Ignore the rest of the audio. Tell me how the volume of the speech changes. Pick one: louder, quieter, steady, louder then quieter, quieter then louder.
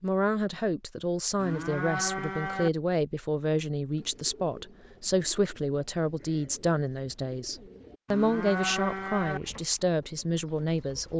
steady.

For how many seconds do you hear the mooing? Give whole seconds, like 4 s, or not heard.
3 s.